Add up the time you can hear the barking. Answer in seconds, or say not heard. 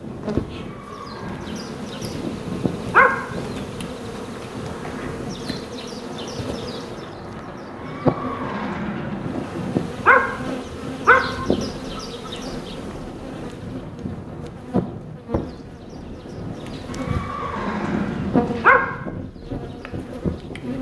5 s.